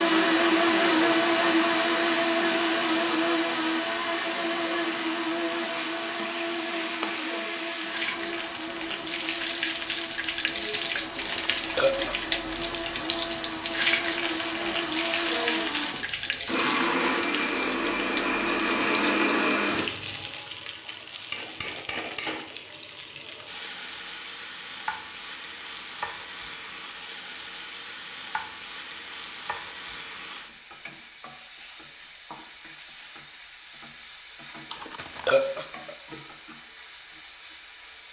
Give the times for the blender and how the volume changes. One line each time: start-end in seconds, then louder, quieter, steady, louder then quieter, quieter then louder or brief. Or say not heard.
0.0-20.2 quieter then louder.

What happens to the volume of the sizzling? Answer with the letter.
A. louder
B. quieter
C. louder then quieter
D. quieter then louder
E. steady
B.